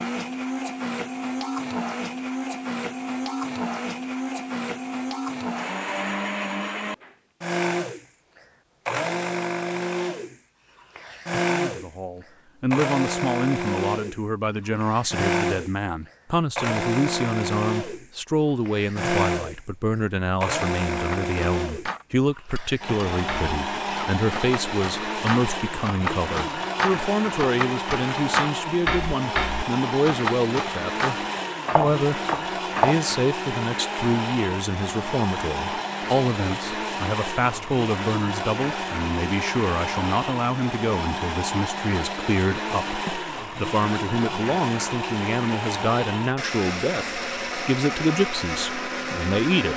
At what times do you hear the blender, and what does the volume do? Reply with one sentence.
You can hear the blender from 0.0 to 49.7 s, at a steady volume.